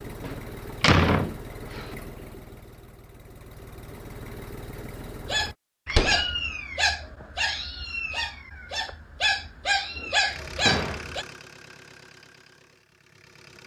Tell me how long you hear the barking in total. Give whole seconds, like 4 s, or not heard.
6 s.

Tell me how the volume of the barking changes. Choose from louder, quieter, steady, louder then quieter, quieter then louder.
quieter then louder.